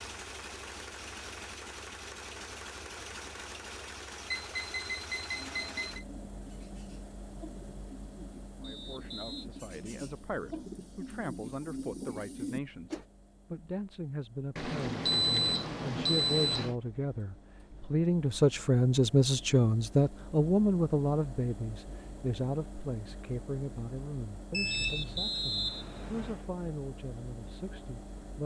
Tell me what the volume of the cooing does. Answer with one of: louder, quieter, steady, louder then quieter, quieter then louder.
louder.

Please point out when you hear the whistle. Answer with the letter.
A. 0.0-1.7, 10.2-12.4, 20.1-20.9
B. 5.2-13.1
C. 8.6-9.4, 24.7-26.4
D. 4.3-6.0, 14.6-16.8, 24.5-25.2
C.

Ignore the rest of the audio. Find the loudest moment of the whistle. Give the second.
26 s.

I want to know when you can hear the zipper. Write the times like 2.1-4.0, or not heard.
not heard.